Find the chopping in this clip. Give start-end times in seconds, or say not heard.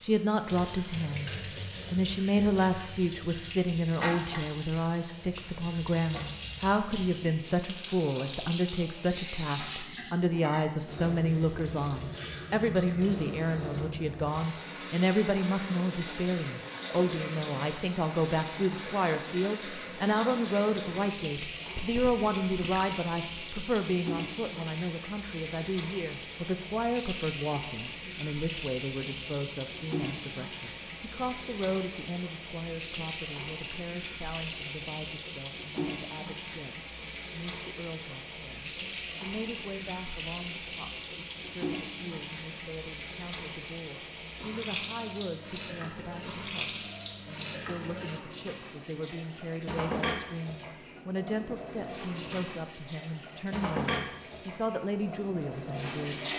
not heard.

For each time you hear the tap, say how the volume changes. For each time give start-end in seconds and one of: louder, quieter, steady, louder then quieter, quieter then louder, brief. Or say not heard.
0.0-56.3 steady.